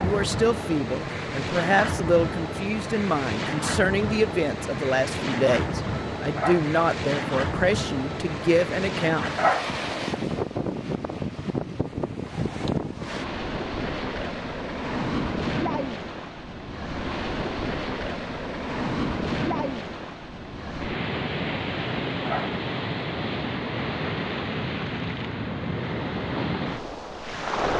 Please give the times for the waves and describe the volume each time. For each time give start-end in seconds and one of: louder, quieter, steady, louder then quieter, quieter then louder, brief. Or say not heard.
0.0-27.7 steady.